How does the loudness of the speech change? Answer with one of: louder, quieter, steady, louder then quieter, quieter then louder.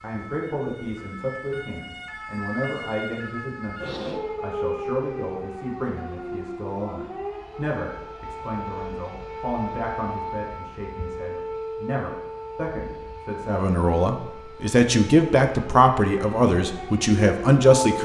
louder.